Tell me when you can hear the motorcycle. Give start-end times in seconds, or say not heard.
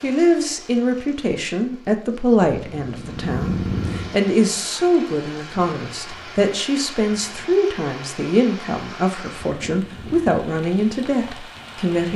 2.5-4.2.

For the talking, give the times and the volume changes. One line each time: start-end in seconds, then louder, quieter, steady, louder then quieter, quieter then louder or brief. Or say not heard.
0.0-12.1 steady.